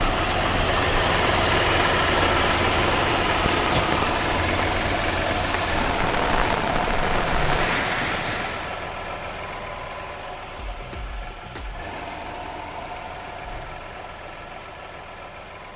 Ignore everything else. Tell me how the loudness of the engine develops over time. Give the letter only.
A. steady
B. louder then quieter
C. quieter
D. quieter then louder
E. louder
C.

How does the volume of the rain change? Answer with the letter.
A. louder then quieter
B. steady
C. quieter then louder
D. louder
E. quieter
D.